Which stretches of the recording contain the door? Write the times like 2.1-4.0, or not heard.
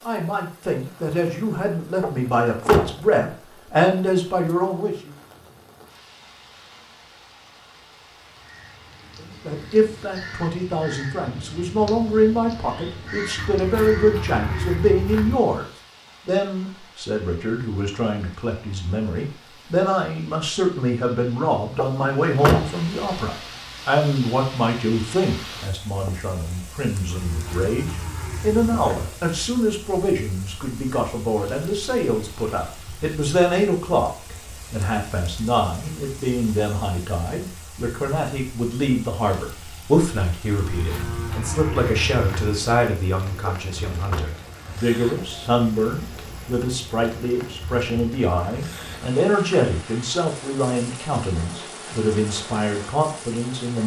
2.0-3.0, 21.8-22.8, 43.5-44.2.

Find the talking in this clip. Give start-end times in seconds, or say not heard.
0.0-5.2, 9.2-15.7, 16.2-53.8.